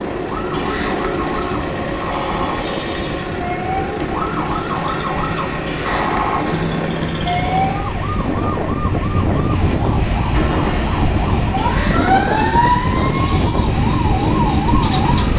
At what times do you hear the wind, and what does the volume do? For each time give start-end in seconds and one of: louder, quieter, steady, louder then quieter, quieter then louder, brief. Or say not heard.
0.0-15.3 louder.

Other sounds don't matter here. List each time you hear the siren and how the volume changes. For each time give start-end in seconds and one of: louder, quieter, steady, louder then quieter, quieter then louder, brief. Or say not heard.
0.2-15.3 louder.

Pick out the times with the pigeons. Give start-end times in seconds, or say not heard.
0.5-3.4, 5.7-7.7, 11.6-13.7.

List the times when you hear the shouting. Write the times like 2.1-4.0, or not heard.
not heard.